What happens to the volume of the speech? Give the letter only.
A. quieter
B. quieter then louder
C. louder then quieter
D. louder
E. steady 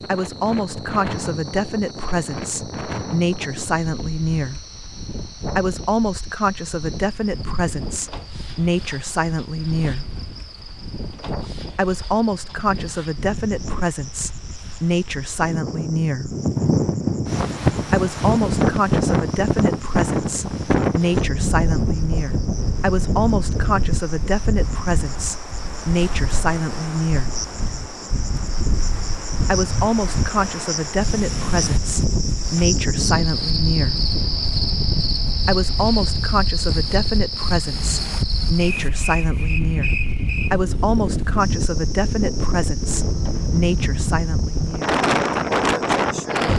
E.